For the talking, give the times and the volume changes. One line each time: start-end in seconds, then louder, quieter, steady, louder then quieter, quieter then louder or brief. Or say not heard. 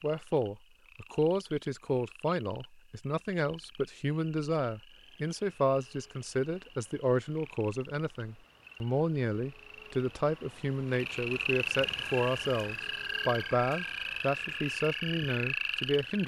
0.0-16.2 steady.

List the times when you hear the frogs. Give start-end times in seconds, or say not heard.
0.0-16.2.